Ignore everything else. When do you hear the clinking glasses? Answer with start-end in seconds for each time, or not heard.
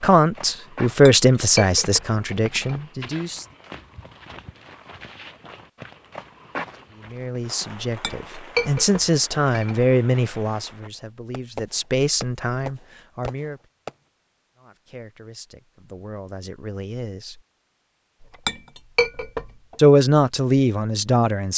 1.1-2.8, 8.0-9.9, 18.2-19.8.